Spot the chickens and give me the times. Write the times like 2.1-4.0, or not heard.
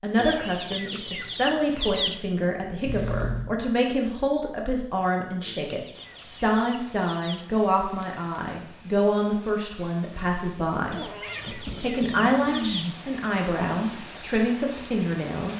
0.1-2.2, 5.5-7.5, 10.9-12.8.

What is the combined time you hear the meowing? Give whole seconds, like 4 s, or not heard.
3 s.